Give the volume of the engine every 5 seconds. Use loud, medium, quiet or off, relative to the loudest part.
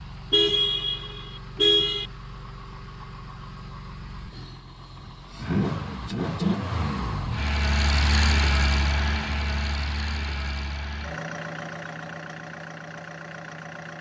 quiet, loud, medium.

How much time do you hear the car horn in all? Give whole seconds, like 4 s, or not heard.
2 s.